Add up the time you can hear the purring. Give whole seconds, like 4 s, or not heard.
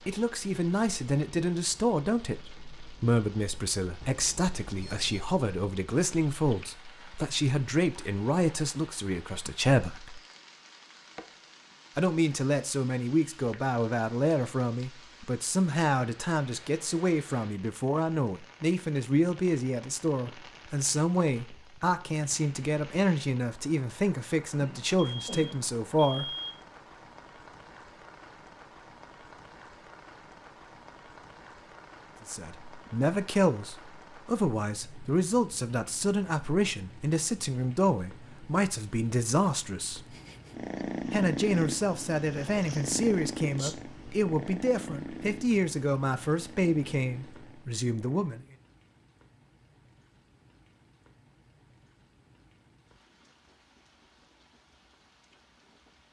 8 s.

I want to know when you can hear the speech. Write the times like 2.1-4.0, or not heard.
0.1-10.2, 11.9-26.3, 32.2-40.1, 41.1-48.5.